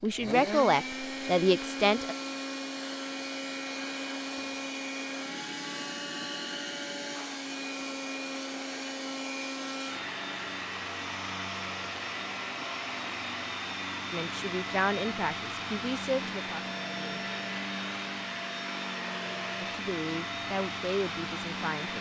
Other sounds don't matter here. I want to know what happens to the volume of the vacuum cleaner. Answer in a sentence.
The loudness of the vacuum cleaner stays about the same.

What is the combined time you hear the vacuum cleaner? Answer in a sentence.
The vacuum cleaner can be heard for 22 seconds in total.